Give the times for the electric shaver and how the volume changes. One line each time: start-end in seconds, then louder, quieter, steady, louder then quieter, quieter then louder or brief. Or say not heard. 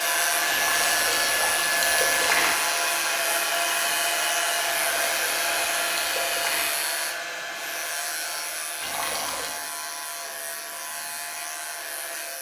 0.0-12.3 quieter.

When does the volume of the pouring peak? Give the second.
2 s.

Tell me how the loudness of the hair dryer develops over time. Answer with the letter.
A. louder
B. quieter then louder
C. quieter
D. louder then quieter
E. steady
C.